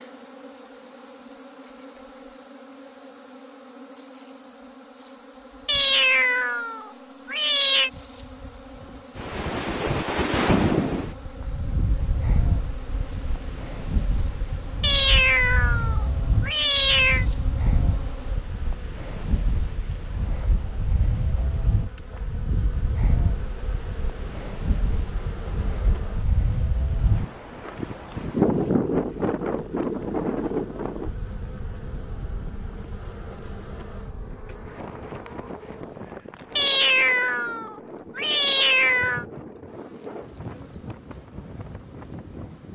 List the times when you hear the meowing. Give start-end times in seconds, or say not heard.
5.7-7.9, 14.8-17.2, 36.5-39.2.